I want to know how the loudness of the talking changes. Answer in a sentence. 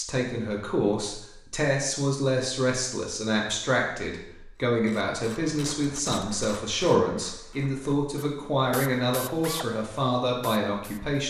The volume of the talking stays about the same.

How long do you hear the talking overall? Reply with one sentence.
The talking can be heard for 11 seconds in total.